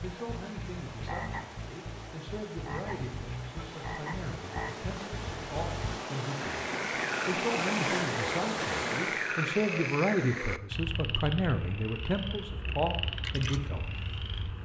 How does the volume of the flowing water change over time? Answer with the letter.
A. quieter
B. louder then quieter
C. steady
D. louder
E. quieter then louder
D.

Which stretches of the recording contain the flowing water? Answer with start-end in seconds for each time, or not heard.
0.0-9.4.